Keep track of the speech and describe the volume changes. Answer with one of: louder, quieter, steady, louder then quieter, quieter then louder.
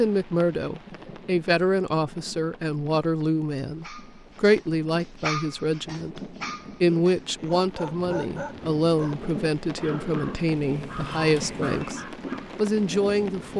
steady.